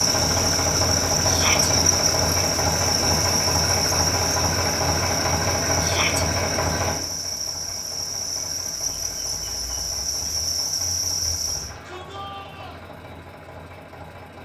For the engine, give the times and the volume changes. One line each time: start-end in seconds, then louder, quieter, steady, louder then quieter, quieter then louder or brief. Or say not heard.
0.0-14.4 quieter.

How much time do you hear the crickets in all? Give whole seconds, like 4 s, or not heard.
12 s.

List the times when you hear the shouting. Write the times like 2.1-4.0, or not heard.
1.2-1.7, 5.8-6.2, 11.4-12.8.